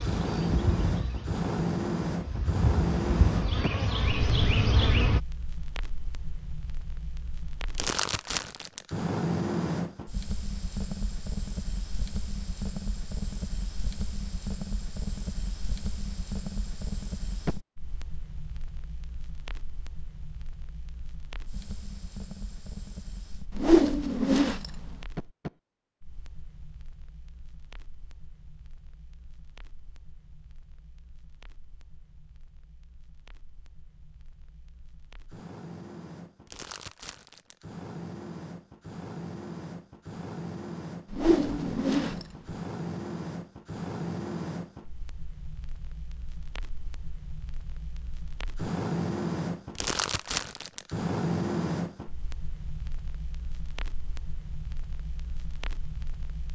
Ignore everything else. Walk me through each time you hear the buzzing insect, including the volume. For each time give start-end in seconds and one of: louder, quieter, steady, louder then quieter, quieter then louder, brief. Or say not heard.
0.0-5.2 quieter then louder.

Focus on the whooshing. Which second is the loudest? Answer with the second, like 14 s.
24 s.